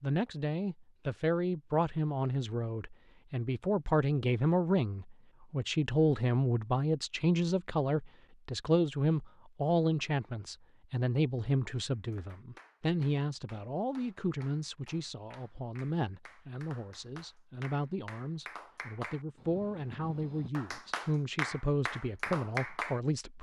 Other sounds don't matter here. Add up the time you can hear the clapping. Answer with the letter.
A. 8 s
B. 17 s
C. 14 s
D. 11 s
D.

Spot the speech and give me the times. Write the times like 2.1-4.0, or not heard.
0.0-23.3.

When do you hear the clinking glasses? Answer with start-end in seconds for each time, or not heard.
not heard.